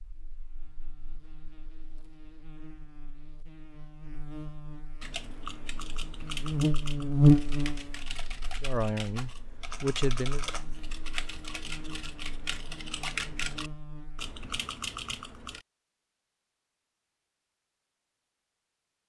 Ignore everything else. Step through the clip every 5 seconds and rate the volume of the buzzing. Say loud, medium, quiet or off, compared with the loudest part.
quiet, loud, quiet, off.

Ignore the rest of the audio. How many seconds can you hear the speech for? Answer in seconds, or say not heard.
2 s.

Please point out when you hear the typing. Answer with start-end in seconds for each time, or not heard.
5.0-15.7.